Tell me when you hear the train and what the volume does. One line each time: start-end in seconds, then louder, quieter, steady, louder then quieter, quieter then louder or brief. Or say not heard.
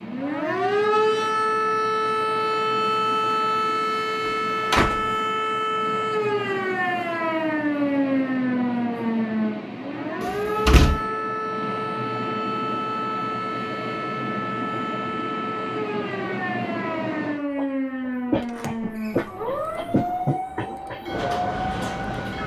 0.0-22.4 louder.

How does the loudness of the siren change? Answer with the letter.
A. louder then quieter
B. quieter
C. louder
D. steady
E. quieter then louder
B.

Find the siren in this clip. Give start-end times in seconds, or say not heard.
0.0-22.4.